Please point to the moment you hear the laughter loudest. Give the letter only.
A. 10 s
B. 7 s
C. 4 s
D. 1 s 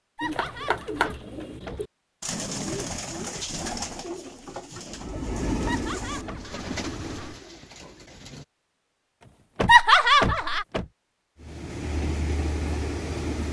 A.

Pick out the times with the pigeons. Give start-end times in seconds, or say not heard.
0.2-8.4.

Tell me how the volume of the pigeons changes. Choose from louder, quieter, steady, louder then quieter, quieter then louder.
quieter.